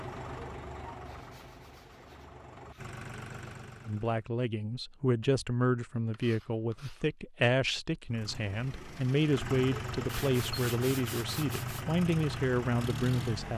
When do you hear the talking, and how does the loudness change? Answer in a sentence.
You can hear the talking from 3.9 to 13.5 s, at a steady volume.